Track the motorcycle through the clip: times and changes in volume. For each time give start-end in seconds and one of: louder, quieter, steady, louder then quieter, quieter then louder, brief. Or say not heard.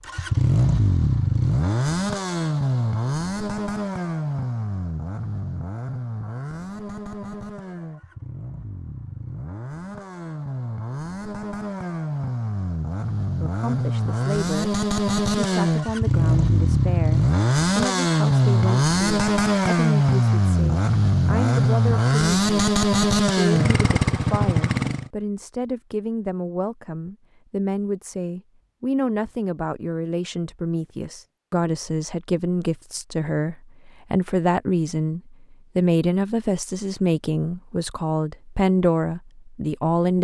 0.0-25.1 quieter then louder.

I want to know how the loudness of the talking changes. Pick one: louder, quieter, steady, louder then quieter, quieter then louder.
louder.